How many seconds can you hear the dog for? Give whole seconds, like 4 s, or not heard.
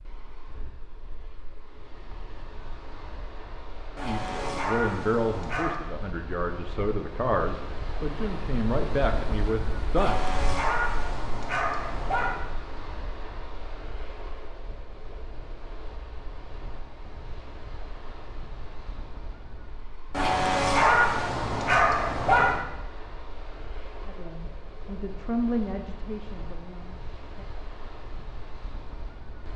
7 s.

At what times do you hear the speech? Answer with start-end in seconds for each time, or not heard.
4.0-10.2, 24.1-27.4.